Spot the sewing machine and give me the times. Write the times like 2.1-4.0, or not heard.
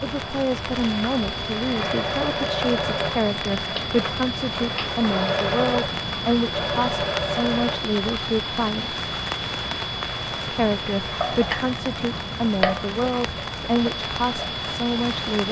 1.8-7.8.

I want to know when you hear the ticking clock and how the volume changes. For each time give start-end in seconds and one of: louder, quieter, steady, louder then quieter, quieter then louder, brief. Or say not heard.
0.0-15.4 steady.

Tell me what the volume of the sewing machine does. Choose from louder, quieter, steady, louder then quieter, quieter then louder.
quieter then louder.